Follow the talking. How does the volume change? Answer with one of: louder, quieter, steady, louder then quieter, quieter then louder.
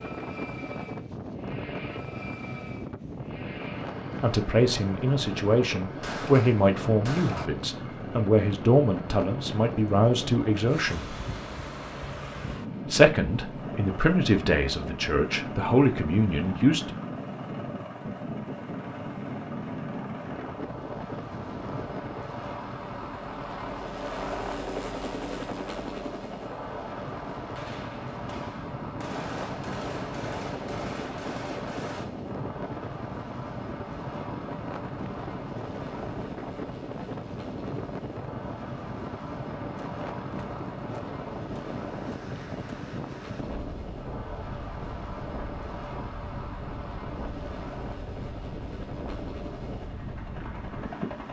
steady.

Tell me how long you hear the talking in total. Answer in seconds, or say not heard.
11 s.